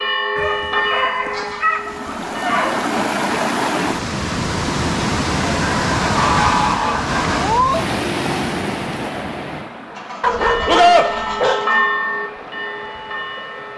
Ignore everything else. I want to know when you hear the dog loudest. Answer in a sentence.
The volume of the dog peaks at 11 seconds.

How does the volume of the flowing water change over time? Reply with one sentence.
The loudness of the flowing water goes down.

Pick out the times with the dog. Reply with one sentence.
The dog can be heard from 0.3 to 2.9 s and from 10.2 to 11.6 s.